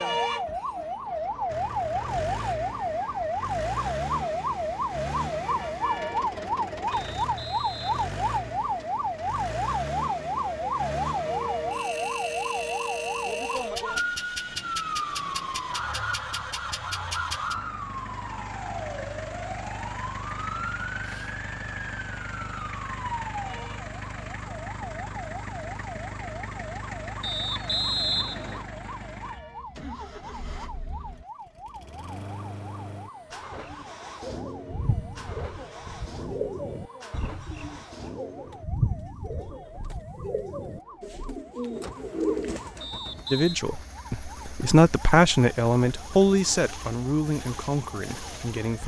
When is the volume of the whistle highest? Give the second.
28 s.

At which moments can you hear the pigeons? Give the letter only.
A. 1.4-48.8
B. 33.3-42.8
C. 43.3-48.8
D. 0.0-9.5
B.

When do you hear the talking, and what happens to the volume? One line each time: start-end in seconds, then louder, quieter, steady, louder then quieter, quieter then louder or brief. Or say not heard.
43.3-48.8 louder then quieter.